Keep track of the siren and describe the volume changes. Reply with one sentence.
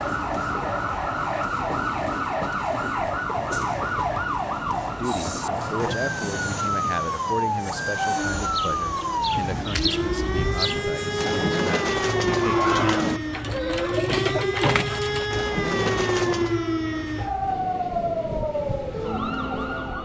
The volume of the siren stays about the same.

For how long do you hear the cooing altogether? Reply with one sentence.
You can hear the cooing for 8 seconds altogether.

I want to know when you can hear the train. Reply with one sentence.
The train can be heard from 0.0 to 20.0 s.